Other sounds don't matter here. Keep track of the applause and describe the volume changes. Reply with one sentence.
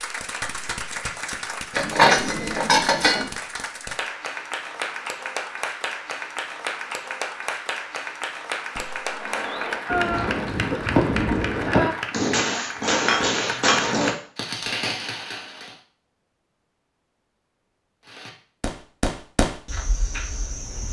The volume of the applause stays about the same.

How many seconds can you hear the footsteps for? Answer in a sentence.
The footsteps can't be heard in this clip.